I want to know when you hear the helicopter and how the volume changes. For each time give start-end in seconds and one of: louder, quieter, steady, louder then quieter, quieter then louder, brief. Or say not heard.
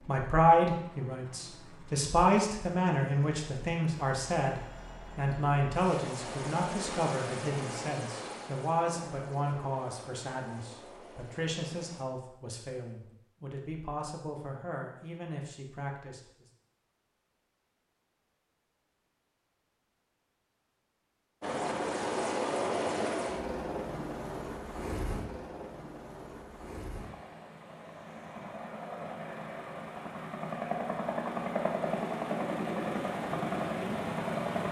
0.0-12.1 louder then quieter
21.4-34.6 quieter then louder.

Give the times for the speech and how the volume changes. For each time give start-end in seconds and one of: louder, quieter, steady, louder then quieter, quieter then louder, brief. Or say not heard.
0.1-16.4 quieter.